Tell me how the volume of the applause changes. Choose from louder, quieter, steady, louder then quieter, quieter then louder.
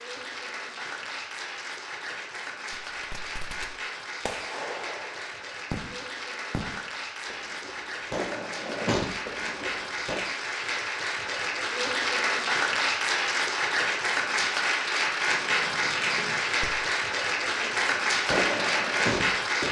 louder.